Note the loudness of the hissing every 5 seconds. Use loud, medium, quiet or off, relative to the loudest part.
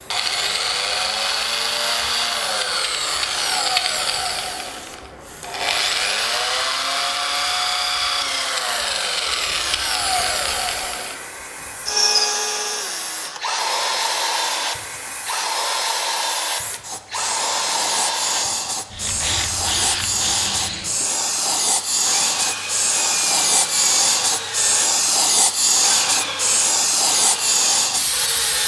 quiet, quiet, quiet, medium, loud, loud.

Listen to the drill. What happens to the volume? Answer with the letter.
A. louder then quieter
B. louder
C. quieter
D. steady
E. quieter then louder
C.